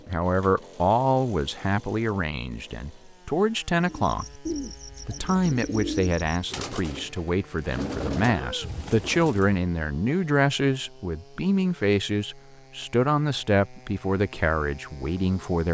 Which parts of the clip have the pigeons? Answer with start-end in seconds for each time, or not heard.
3.8-9.6.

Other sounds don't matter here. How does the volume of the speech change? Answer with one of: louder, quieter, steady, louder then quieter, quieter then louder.
steady.